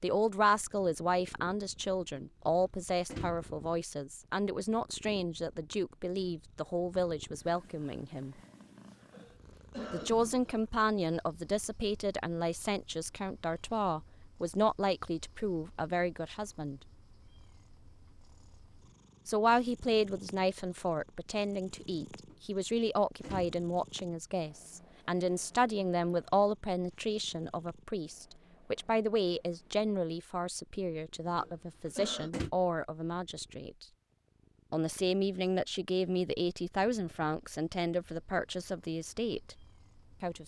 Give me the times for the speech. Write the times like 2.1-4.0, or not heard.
0.0-8.3, 9.9-16.8, 19.2-33.9, 34.7-40.4.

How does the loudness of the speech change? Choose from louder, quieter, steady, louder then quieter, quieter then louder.
steady.